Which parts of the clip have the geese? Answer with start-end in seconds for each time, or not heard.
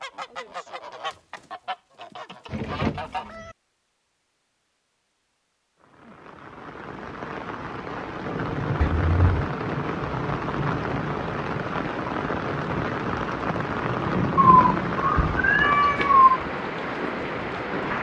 0.0-3.4.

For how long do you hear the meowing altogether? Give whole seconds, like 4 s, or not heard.
4 s.